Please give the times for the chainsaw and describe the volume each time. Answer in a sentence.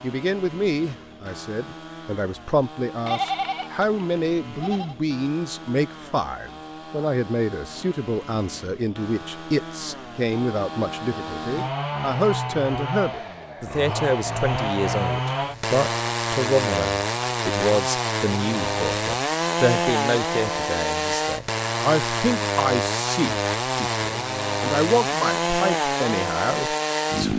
The chainsaw can be heard from 0.0 to 27.3 s, getting louder.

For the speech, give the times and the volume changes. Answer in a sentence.
The speech can be heard from 0.0 to 27.3 s, at a steady volume.